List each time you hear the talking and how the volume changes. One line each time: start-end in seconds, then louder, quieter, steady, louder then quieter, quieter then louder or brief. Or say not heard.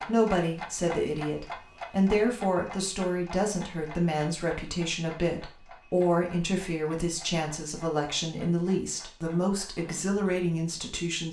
0.0-11.2 steady.